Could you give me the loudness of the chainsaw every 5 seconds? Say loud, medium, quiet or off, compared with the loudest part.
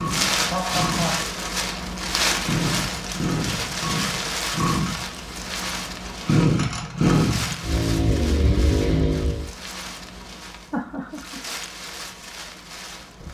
medium, loud, off.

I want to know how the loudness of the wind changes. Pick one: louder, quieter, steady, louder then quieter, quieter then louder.
quieter.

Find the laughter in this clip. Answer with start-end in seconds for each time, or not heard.
0.5-1.3, 10.7-11.4.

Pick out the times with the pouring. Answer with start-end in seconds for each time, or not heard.
not heard.